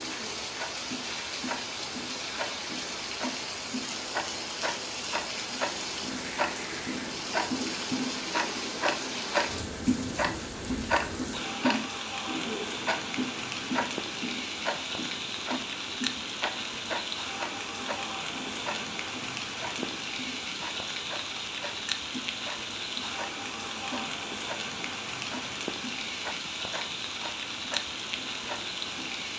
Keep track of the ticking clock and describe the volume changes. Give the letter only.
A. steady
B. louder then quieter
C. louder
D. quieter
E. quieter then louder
B.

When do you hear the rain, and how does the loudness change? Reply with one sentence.
You can hear the rain from 0.0 to 29.3 s, at a steady volume.